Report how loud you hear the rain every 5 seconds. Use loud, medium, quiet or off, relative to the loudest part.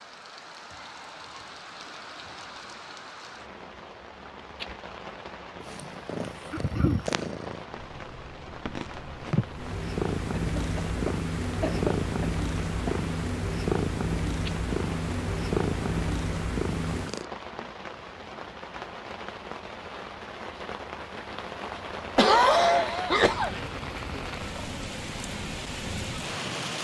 medium, medium, medium, medium, loud, loud.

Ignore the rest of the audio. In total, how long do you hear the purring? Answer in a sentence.
You can hear the purring for 12 seconds altogether.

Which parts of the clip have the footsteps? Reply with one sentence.
You can't hear the footsteps here.